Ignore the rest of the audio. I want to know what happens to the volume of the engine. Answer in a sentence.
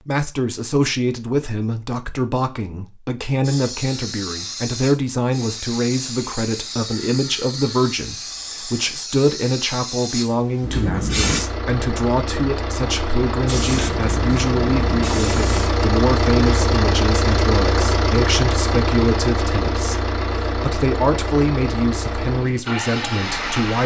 The loudness of the engine goes up, then down.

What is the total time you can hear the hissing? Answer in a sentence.
You can hear the hissing for 10 seconds altogether.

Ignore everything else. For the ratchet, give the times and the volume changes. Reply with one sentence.
You can't hear the ratchet here.